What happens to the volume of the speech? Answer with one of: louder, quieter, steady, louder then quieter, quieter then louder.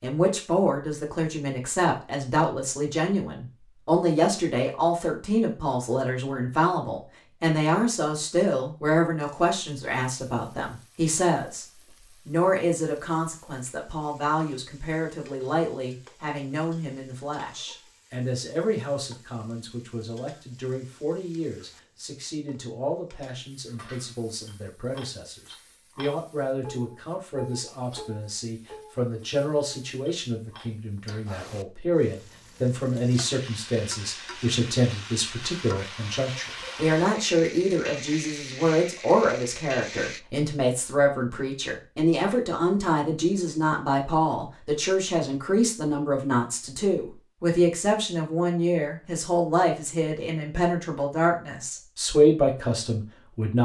quieter then louder.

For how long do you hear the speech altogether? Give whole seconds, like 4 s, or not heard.
53 s.